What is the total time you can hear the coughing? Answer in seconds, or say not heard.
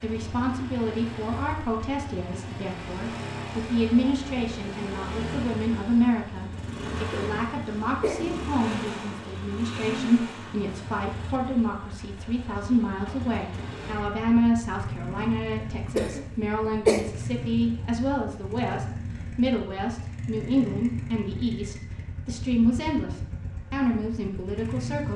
2 s.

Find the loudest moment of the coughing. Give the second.
17 s.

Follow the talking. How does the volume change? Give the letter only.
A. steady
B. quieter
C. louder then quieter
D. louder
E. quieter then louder
A.